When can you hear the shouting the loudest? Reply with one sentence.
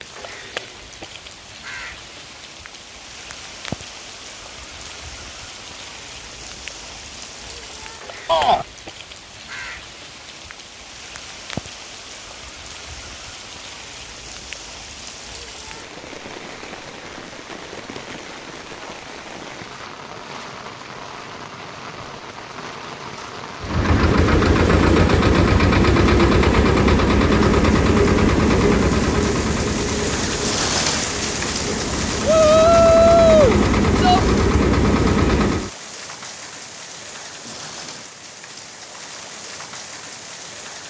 The volume of the shouting peaks at 33 seconds.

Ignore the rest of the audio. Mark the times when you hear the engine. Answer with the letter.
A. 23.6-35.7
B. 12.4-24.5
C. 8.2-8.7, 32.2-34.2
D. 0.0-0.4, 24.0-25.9
A.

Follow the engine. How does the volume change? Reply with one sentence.
The loudness of the engine goes down, then up.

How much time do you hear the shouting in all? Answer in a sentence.
You can hear the shouting for 2 seconds altogether.